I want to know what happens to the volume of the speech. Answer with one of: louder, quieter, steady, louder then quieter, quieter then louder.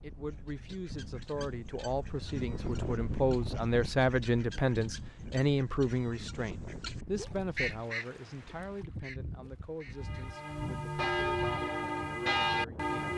louder then quieter.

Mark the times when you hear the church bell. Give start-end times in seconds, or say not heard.
9.9-13.1.